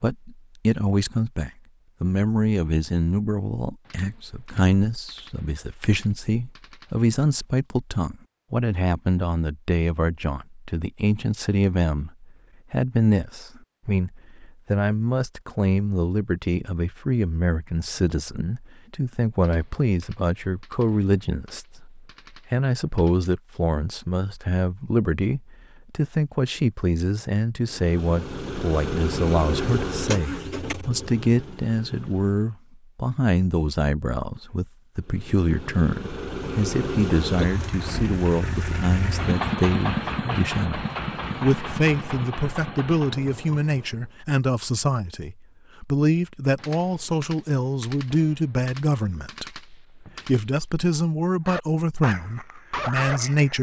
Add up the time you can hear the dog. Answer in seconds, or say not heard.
2 s.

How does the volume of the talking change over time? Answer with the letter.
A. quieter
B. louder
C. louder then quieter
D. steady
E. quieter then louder
D.